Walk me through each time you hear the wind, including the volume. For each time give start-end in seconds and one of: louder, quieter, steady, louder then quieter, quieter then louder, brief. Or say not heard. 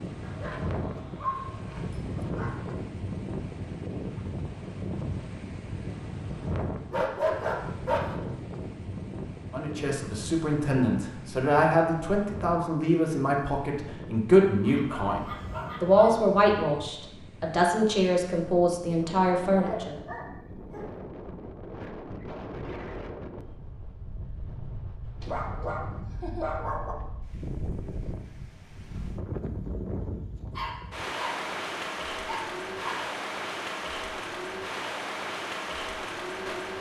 0.0-36.7 quieter then louder.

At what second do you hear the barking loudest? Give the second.
7 s.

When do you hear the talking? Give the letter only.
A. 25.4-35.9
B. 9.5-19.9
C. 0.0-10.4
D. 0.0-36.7
B.